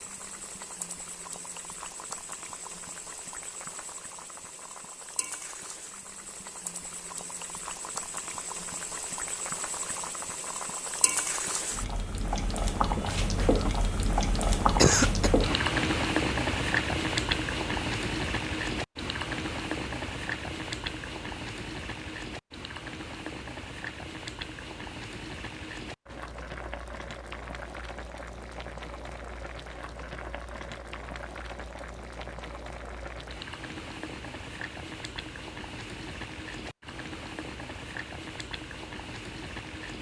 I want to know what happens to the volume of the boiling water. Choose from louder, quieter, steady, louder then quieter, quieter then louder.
louder then quieter.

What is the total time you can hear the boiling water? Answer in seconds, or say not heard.
40 s.